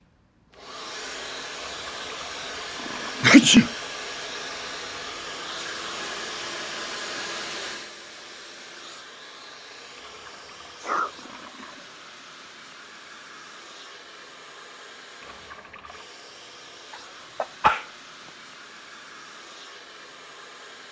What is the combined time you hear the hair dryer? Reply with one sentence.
You can hear the hair dryer for 21 seconds altogether.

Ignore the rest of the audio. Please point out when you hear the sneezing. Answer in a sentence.
You can hear the sneezing from 3.2 to 3.7 s, from 10.1 to 11.1 s and from 16.9 to 17.9 s.